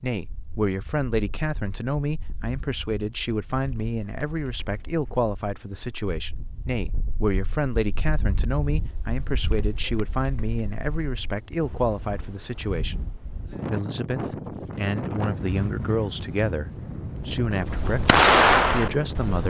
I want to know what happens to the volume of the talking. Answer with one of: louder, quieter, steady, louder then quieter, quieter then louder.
steady.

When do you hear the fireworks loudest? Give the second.
18 s.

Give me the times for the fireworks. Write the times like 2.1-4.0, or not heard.
17.6-19.4.